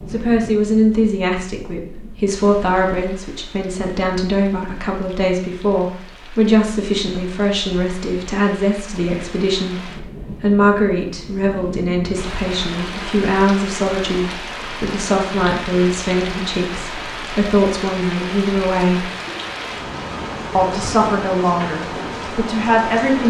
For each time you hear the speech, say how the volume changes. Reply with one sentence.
The speech can be heard from 0.1 to 19.1 s, at a steady volume; and briefly from 20.6 to 23.2 s.